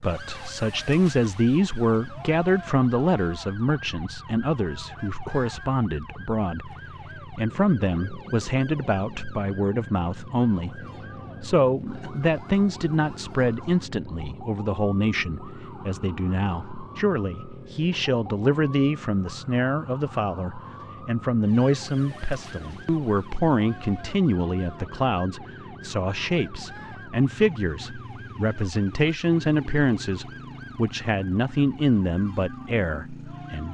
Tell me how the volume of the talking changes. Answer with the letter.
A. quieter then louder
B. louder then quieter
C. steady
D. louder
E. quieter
C.